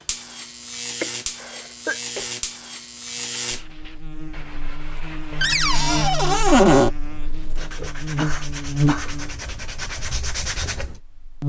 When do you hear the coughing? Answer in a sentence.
You can hear the coughing from 1.0 to 2.2 s and from 8.2 to 9.2 s.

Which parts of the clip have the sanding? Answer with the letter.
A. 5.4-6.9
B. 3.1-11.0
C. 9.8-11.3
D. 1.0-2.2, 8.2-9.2
B.